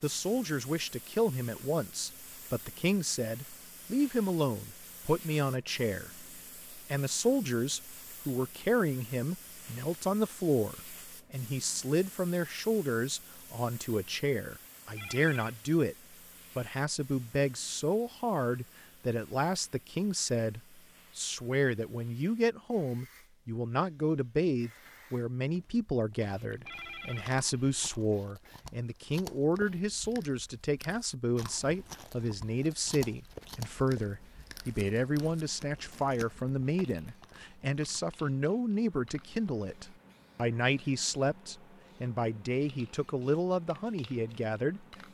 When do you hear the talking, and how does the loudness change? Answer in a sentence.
You can hear the talking from 0.0 to 15.9 s, at a steady volume; and from 16.6 to 44.9 s, at a steady volume.